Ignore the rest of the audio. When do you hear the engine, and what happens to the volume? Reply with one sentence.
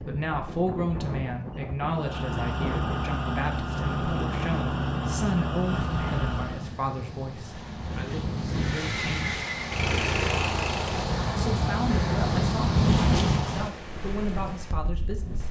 The engine can be heard from 1.9 to 6.8 s, at a steady volume; and briefly from 8.4 to 11.1 s.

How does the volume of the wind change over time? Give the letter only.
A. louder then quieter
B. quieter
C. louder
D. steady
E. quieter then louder
C.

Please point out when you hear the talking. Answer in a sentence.
The talking can be heard from 0.0 to 9.3 s and from 11.3 to 15.4 s.